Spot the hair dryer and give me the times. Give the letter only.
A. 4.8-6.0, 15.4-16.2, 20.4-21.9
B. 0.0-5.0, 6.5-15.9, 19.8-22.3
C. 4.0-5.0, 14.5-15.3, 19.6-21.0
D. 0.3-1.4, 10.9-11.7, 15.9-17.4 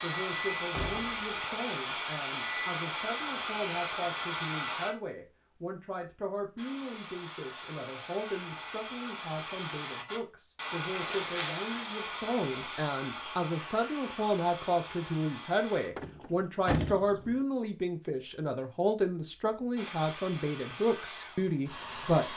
B.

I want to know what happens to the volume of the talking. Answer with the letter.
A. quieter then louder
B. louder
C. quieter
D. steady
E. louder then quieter
B.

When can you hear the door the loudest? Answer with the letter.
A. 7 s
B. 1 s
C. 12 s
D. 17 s
D.